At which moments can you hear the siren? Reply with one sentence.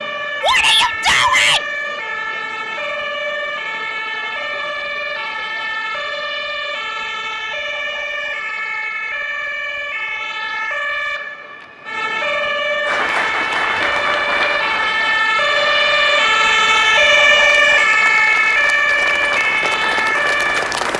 The siren can be heard from 0.0 to 20.8 s.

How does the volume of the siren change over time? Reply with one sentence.
The loudness of the siren goes up.